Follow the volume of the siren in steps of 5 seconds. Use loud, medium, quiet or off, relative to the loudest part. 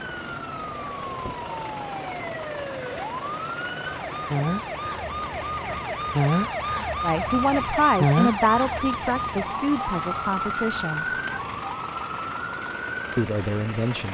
medium, loud, medium.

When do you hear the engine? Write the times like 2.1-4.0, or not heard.
0.0-14.0.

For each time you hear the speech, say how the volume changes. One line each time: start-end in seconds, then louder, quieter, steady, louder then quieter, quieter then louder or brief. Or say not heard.
7.0-11.1 quieter
13.2-14.0 brief.